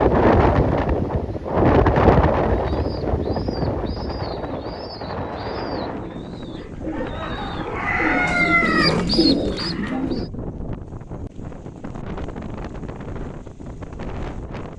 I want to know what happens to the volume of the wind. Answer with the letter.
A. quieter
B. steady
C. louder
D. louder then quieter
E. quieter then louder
A.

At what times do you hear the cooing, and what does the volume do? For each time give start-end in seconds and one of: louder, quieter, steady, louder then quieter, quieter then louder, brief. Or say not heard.
2.5-10.3 louder.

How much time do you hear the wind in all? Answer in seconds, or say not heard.
15 s.